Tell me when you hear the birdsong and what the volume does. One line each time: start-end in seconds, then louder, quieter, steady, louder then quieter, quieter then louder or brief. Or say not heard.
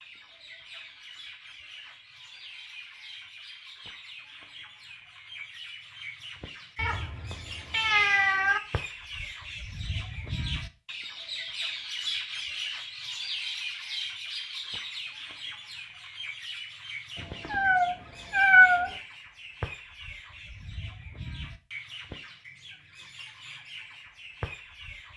0.0-25.1 louder then quieter.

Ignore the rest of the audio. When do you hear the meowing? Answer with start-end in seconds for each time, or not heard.
6.8-8.6, 17.1-18.9.